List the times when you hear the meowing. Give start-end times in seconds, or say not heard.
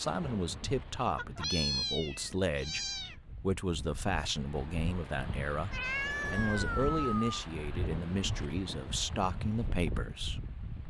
1.1-3.1, 5.7-7.4.